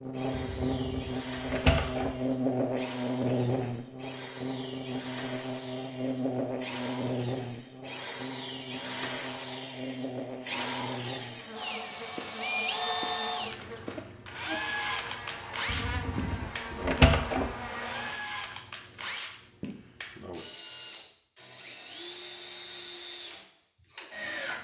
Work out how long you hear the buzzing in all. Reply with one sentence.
You can hear the buzzing for 18 seconds altogether.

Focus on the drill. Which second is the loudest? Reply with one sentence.
The loudest moment of the drill is at 13 seconds.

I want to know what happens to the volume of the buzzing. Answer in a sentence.
The volume of the buzzing goes down.